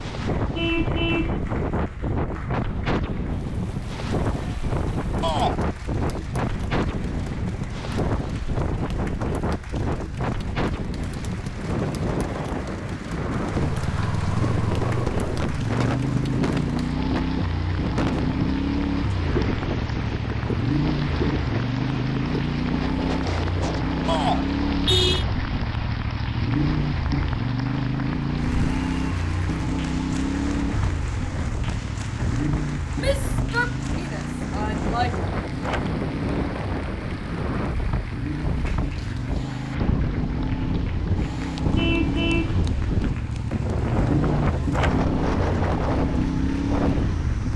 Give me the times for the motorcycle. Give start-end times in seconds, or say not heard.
13.5-47.5.